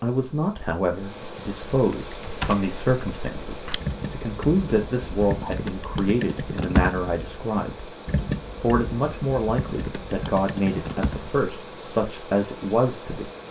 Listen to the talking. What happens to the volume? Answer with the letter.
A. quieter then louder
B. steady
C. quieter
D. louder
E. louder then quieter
B.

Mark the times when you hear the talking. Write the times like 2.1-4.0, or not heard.
0.0-7.9, 8.6-13.3.